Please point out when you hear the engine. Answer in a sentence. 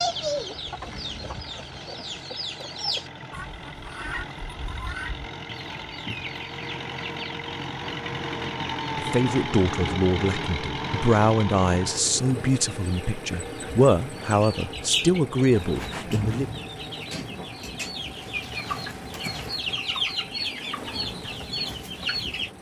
You can hear the engine from 0.0 to 22.5 s.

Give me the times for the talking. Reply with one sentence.
You can hear the talking from 8.9 to 16.6 s.